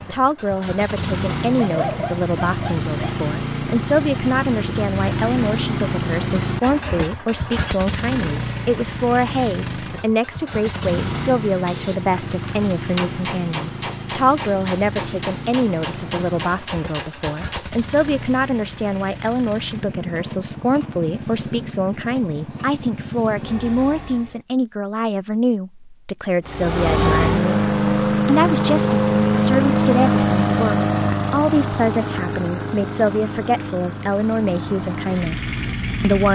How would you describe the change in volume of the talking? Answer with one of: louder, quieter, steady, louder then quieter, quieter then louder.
steady.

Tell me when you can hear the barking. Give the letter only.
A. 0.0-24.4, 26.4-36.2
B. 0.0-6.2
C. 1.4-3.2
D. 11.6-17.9
C.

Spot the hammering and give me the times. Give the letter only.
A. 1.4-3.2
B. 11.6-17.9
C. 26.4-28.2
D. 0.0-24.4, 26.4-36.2
B.